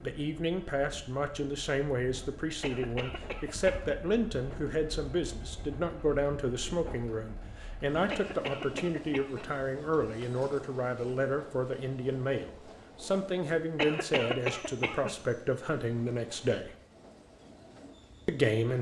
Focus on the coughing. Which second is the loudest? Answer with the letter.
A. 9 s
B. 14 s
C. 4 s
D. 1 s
B.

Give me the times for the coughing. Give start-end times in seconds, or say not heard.
2.6-4.0, 8.1-9.4, 13.8-15.2.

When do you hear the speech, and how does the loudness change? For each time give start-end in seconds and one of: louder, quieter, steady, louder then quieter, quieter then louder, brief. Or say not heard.
0.0-16.8 steady
18.2-18.7 brief.